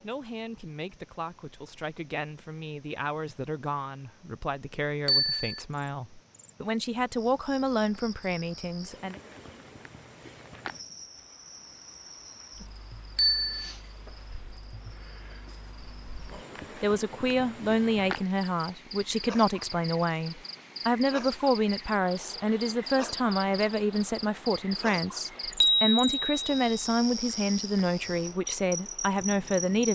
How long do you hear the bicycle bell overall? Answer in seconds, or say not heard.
2 s.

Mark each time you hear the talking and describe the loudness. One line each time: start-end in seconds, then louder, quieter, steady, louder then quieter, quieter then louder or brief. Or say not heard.
0.0-9.2 louder
16.8-29.9 steady.